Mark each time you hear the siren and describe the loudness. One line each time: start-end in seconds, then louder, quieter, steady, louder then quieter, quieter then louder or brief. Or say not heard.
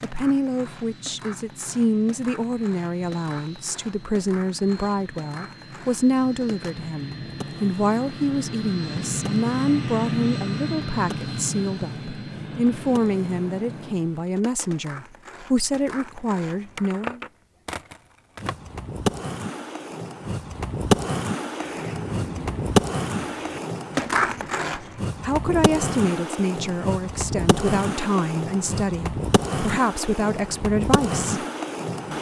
not heard.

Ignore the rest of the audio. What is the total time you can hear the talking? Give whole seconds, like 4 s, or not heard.
24 s.